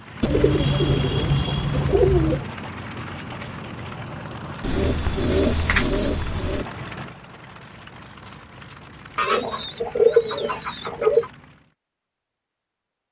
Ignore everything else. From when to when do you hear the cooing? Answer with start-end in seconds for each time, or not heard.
0.2-2.5, 4.6-6.7, 9.2-11.3.